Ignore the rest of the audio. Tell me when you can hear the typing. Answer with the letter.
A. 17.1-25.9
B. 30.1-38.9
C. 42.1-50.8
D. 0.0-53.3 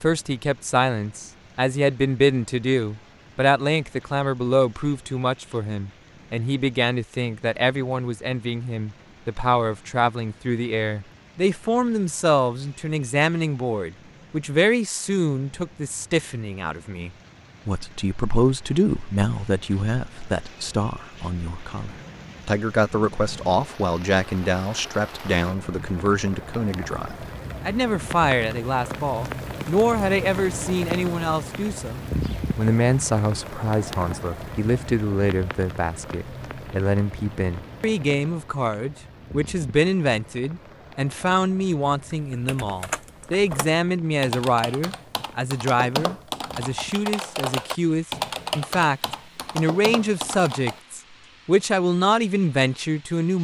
C.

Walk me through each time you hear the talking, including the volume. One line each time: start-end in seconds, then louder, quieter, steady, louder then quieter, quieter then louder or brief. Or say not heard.
0.0-53.3 steady.